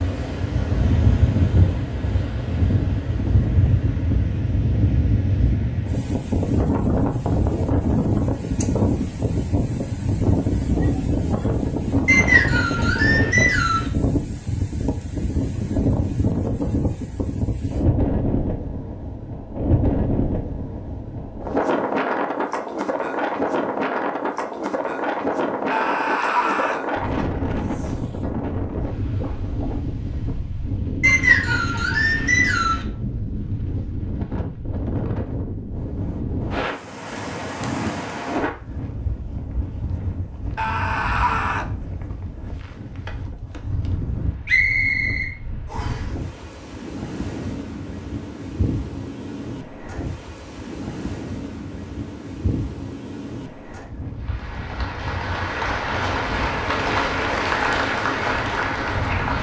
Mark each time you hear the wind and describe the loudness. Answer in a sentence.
The wind can be heard from 0.0 to 59.3 s, getting quieter.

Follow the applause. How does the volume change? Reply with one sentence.
The volume of the applause goes up.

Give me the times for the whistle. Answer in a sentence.
You can hear the whistle from 12.1 to 13.9 s, from 31.0 to 32.9 s and from 44.5 to 46.0 s.